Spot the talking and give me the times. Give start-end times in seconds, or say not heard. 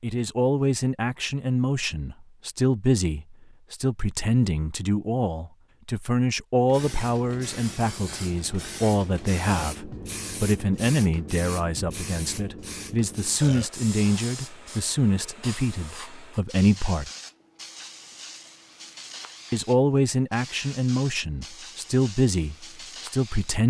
0.0-17.1, 19.5-23.6.